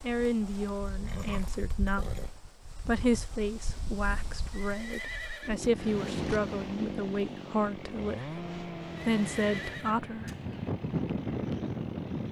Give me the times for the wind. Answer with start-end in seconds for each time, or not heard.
0.0-12.2.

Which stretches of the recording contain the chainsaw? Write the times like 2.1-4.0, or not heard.
5.4-12.2.